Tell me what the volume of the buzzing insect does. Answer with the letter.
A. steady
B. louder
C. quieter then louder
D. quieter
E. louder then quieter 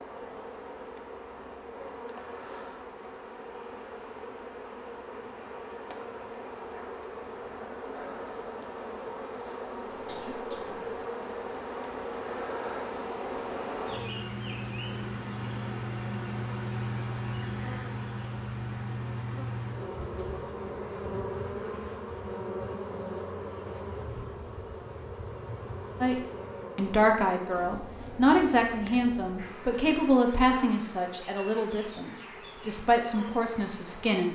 E.